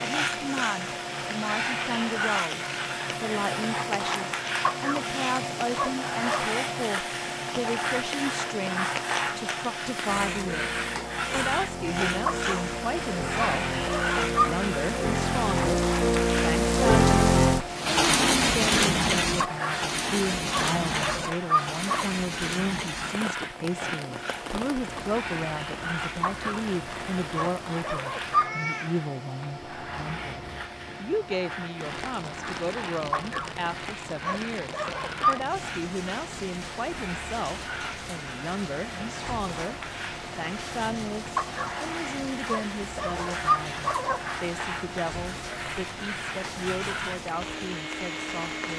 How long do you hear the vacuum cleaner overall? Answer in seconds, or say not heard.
49 s.